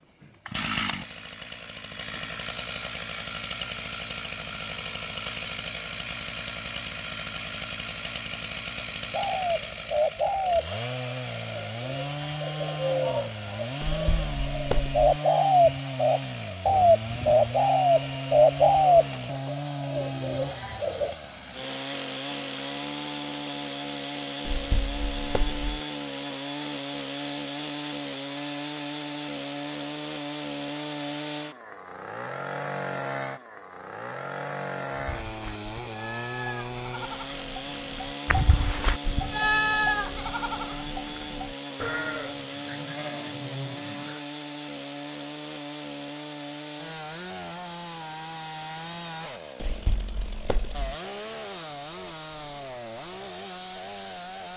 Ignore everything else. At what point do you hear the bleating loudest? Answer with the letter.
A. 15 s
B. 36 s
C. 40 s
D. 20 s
C.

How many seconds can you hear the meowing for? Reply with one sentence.
The meowing can be heard for 4 seconds in total.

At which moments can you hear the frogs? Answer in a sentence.
You can't hear the frogs here.